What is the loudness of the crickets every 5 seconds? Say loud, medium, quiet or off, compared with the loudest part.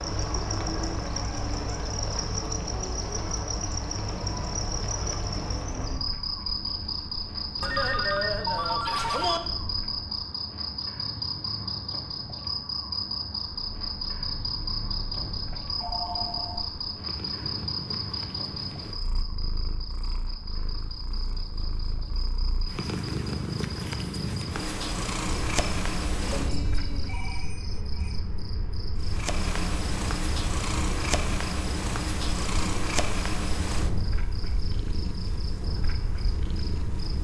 loud, loud, loud, loud, medium, medium, medium, medium.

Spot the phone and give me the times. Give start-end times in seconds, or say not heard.
7.6-9.4, 15.8-16.6, 26.2-28.2.